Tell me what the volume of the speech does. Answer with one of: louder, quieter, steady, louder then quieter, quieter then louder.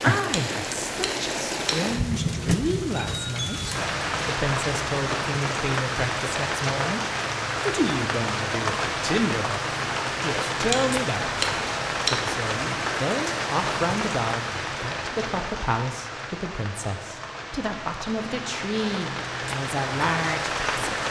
steady.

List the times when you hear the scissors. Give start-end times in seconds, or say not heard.
0.3-1.8, 10.7-12.2.